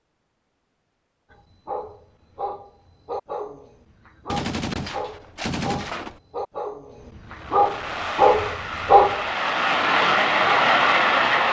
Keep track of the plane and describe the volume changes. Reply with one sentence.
The loudness of the plane goes up.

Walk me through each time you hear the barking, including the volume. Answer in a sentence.
You can hear the barking from 1.3 to 9.3 s, getting louder.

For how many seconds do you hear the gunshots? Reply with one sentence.
You can hear the gunshots for 2 seconds altogether.